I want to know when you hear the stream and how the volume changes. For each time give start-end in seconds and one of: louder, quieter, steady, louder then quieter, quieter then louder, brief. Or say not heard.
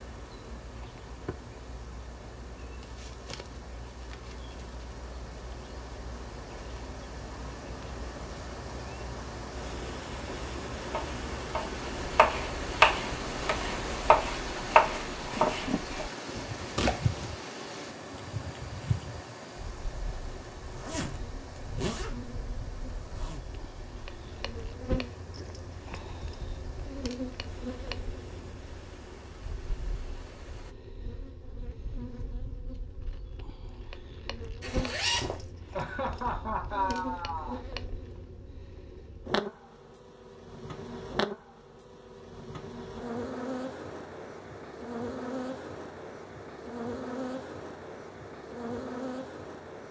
0.0-30.8 louder then quieter.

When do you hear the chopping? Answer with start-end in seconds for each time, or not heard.
10.9-17.2.